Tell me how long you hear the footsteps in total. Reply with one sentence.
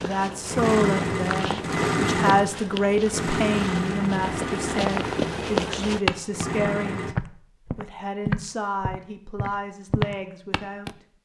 You can hear the footsteps for 11 seconds altogether.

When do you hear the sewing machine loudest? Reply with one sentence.
The loudest moment of the sewing machine is at 2 seconds.